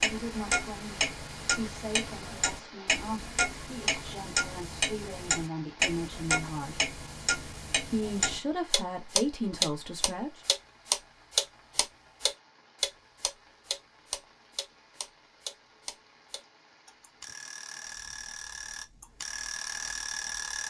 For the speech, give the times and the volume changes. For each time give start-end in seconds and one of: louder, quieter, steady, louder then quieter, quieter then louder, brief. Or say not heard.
0.0-6.9 louder
7.9-10.4 brief.